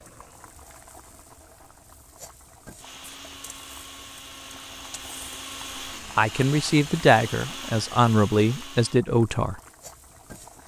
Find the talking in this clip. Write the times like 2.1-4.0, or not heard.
6.2-9.6.